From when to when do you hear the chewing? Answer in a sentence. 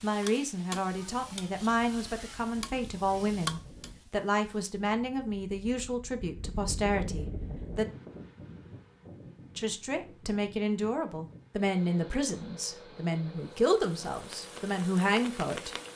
The chewing can't be heard in this clip.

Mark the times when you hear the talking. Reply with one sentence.
You can hear the talking from 0.0 to 7.8 s and from 9.6 to 15.8 s.